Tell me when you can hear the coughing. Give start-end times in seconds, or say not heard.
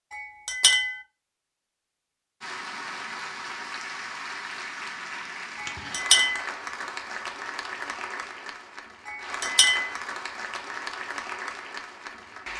not heard.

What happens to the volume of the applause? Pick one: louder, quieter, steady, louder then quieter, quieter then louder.
steady.